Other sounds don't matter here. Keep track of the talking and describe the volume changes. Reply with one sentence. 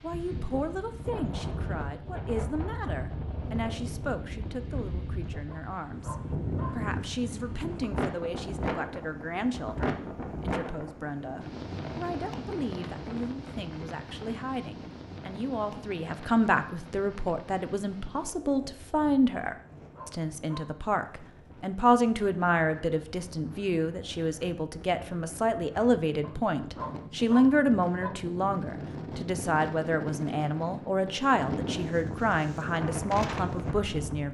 The volume of the talking goes up.